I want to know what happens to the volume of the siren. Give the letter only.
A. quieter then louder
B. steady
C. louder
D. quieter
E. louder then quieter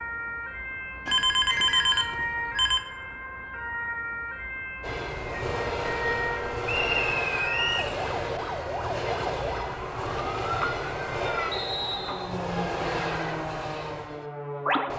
B.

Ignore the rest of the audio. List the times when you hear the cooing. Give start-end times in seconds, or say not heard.
not heard.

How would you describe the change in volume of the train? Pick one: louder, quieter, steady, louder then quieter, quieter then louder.
steady.